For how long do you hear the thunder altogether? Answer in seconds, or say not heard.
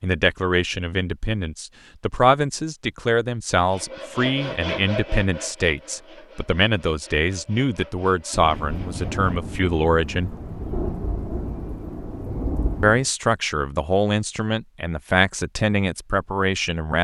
5 s.